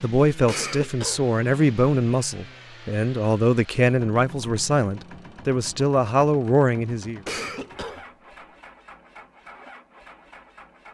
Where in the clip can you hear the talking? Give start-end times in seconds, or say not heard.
0.0-7.2.